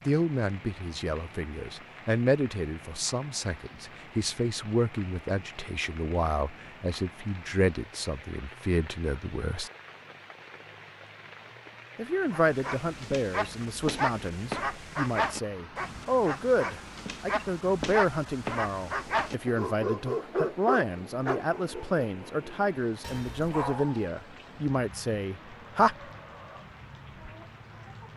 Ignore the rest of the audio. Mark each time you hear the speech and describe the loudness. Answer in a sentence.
The speech can be heard from 0.1 to 9.7 s, at a steady volume; and from 11.9 to 25.9 s, at a steady volume.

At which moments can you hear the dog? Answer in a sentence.
You can hear the dog from 12.3 to 24.1 s.